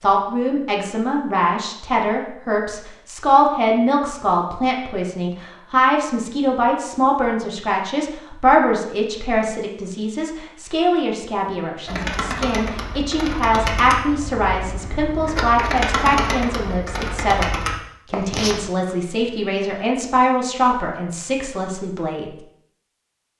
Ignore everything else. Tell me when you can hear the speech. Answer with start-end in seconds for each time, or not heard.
0.0-17.5, 18.1-22.2.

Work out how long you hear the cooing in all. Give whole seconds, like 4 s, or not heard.
7 s.